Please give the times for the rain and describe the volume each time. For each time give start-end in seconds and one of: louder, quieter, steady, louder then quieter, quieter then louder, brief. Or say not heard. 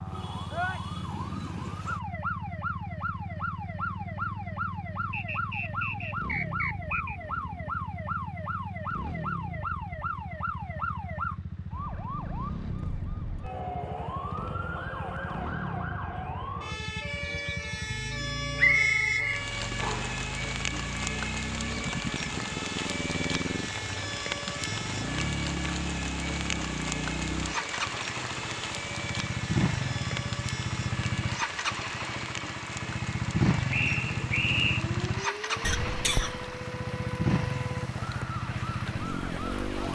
19.2-39.9 quieter.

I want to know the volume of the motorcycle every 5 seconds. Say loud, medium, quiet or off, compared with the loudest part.
medium, medium, medium, medium, medium, loud, loud, loud.